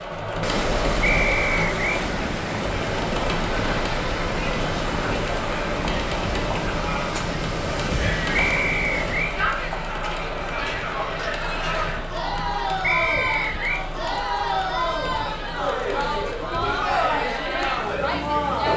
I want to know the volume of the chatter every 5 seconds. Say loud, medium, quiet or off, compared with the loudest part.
medium, medium, loud, loud.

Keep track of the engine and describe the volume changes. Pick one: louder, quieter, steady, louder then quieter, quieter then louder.
quieter.